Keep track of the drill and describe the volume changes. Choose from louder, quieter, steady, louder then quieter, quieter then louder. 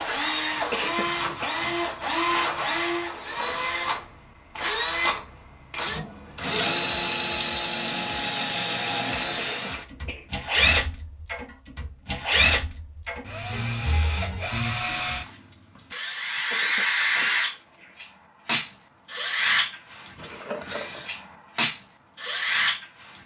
steady.